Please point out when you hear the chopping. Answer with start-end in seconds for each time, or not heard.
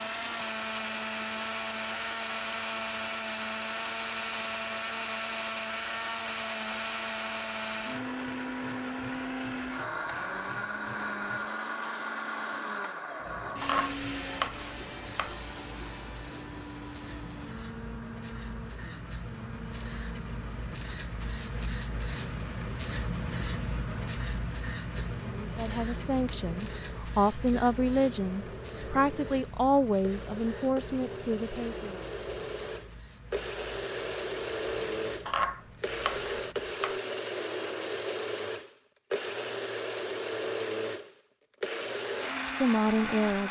13.6-15.3, 35.2-37.0.